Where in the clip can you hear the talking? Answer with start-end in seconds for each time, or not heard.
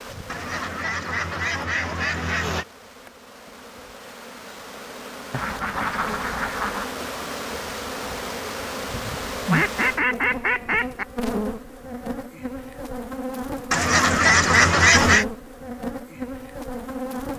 not heard.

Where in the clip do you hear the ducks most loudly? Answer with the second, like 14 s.
15 s.